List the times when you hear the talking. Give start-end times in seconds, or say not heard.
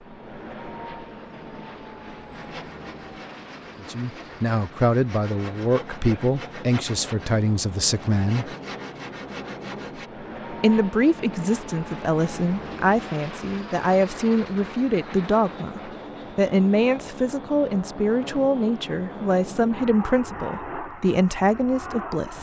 3.8-8.5, 10.6-22.3.